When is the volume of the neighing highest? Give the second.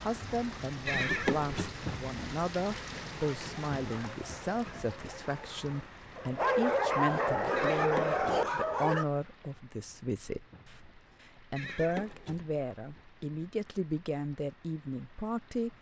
1 s.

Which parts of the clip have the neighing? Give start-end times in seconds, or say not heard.
0.8-1.8, 7.5-8.4, 11.6-12.4.